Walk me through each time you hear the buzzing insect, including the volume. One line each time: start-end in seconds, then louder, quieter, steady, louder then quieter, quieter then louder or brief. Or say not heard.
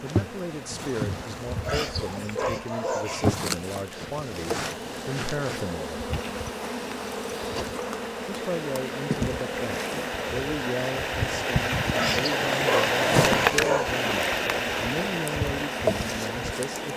0.0-16.9 steady.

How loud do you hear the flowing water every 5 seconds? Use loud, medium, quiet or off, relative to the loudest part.
quiet, quiet, loud, medium.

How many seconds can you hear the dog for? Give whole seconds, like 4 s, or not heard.
4 s.